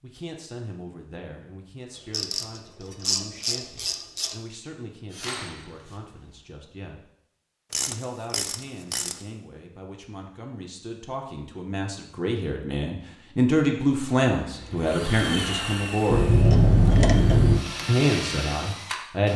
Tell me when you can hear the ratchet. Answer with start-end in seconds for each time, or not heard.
2.1-4.3, 7.7-9.2, 16.1-17.6.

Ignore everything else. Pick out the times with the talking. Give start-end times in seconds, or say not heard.
0.0-7.0, 7.8-16.3, 17.9-19.3.